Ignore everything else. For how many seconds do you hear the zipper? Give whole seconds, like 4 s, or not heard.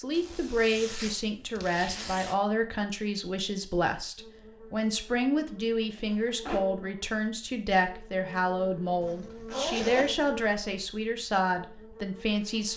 4 s.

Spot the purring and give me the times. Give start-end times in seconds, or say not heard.
not heard.